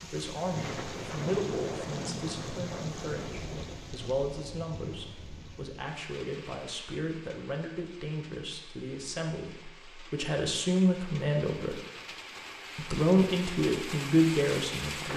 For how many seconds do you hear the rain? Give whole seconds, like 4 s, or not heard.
15 s.